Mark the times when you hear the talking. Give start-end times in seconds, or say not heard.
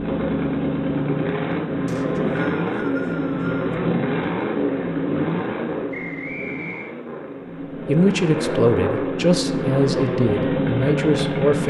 7.8-11.6.